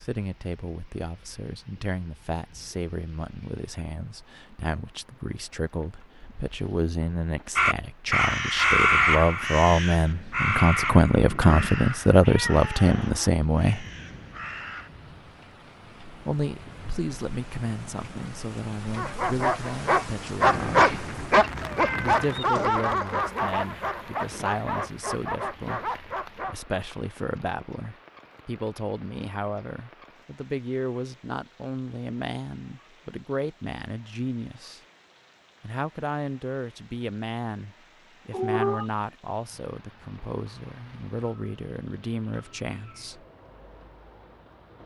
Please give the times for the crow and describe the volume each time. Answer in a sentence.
You can hear the crow from 7.5 to 14.9 s, getting quieter.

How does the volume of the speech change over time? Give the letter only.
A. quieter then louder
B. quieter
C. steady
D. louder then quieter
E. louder
D.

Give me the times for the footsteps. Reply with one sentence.
The footsteps can't be heard in this clip.